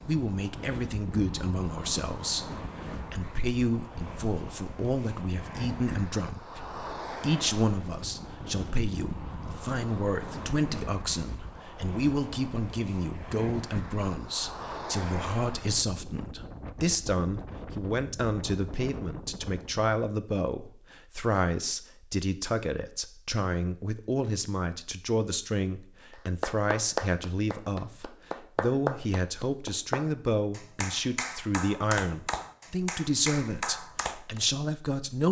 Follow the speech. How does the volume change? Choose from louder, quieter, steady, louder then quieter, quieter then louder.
steady.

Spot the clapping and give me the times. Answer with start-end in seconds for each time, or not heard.
26.1-34.4.